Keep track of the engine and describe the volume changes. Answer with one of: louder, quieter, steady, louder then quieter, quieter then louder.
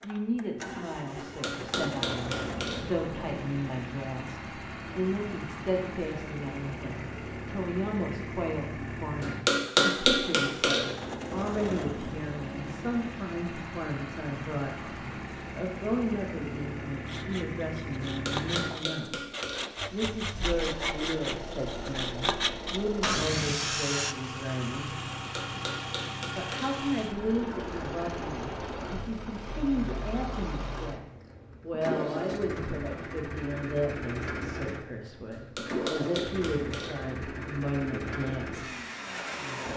steady.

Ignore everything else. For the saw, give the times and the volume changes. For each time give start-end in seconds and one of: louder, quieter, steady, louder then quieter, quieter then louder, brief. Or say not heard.
17.1-24.1 louder.